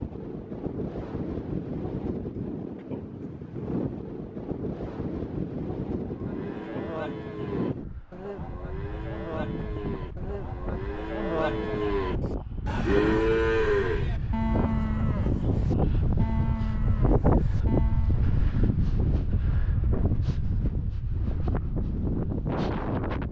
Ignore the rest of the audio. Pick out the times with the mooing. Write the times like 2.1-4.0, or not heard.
5.9-18.3.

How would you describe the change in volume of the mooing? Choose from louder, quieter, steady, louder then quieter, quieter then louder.
louder then quieter.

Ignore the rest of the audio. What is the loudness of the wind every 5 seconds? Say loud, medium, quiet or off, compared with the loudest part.
medium, medium, medium, loud, loud.